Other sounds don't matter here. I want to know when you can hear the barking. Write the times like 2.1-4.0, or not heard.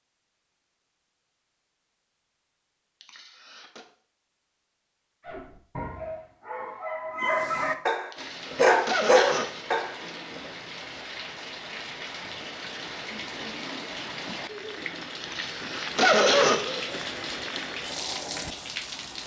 5.2-10.5.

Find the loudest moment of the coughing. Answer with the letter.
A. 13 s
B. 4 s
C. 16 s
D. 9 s
C.